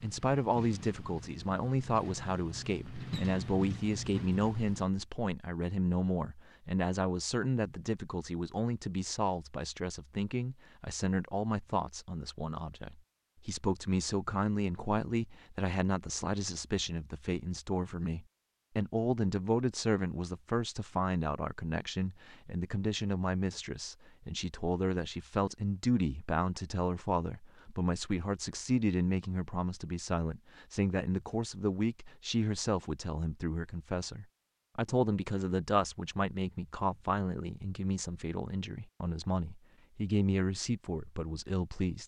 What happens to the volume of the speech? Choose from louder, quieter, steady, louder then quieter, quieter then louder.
steady.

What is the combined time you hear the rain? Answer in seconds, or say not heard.
not heard.